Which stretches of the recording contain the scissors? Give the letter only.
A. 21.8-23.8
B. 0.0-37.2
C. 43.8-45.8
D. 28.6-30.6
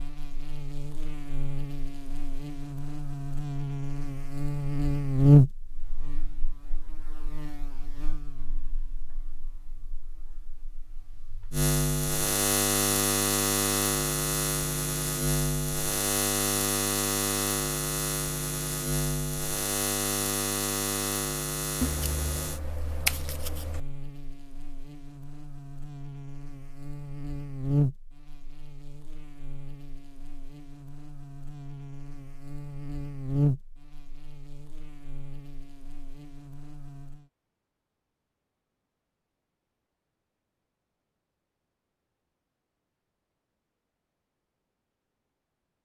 A.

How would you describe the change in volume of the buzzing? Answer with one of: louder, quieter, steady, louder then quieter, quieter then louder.
quieter.